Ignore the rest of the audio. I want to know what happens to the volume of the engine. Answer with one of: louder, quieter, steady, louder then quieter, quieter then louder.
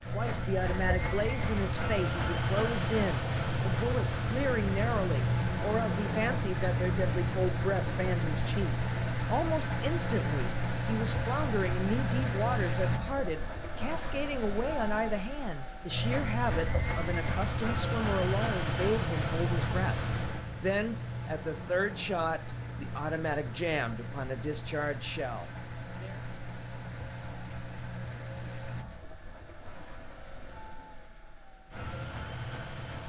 quieter.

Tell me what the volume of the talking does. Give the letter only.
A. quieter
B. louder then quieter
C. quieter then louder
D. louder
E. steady
E.